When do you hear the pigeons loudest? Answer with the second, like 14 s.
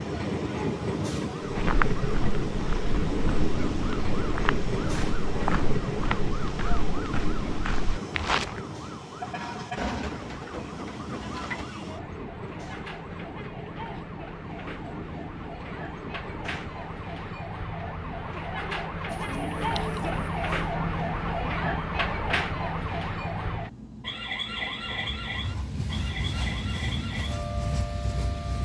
10 s.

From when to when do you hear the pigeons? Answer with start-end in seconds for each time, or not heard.
9.8-11.7, 19.1-20.6.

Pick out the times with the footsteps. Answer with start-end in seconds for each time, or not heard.
1.4-8.6.